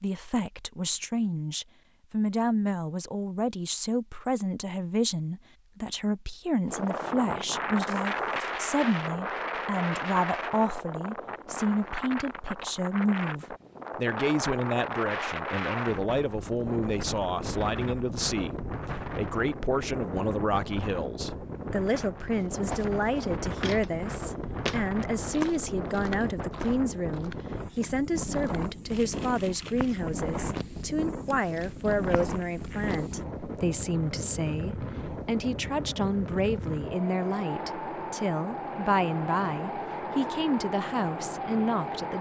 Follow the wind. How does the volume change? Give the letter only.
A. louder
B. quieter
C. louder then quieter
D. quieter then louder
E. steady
E.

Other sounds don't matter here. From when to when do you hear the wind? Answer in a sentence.
You can hear the wind from 6.7 to 42.1 s.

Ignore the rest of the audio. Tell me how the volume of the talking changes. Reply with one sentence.
The loudness of the talking stays about the same.